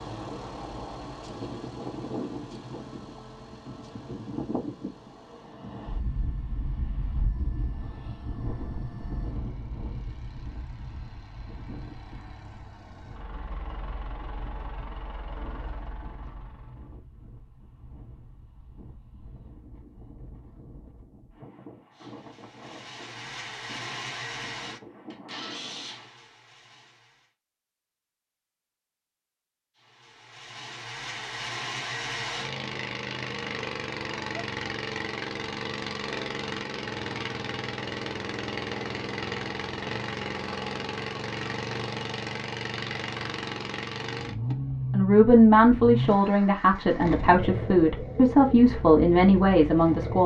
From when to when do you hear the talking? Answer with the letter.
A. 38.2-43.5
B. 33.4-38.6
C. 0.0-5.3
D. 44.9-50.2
D.